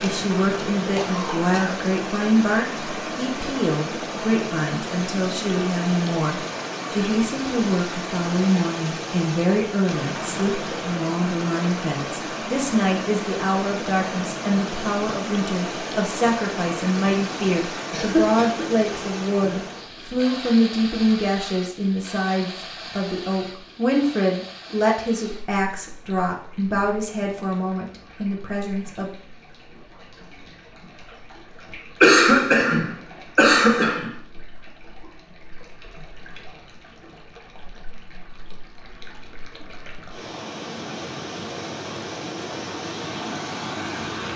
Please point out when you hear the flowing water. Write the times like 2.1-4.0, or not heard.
0.0-44.3.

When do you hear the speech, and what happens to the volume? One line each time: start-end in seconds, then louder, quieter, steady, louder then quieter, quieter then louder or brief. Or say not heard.
0.0-29.1 steady.